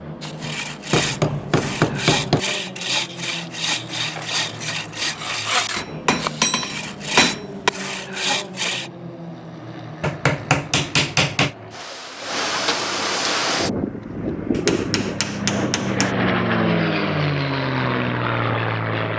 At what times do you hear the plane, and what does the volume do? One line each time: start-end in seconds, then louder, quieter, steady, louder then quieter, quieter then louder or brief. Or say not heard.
0.0-19.1 louder.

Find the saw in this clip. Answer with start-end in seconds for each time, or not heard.
0.2-8.9.